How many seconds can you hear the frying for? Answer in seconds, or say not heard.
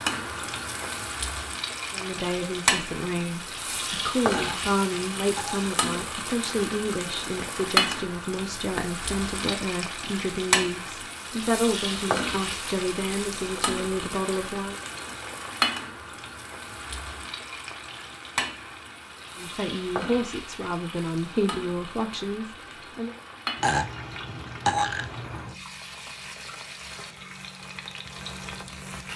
29 s.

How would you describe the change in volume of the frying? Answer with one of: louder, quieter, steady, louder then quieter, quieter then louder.
quieter.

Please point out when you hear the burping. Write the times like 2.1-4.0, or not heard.
4.3-5.7, 23.6-25.5.